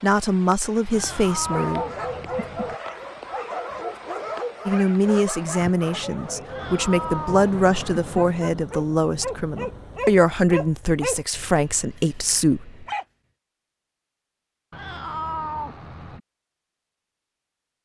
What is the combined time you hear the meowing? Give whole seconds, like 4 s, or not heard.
5 s.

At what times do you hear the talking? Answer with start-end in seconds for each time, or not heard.
0.0-1.9, 4.7-12.8.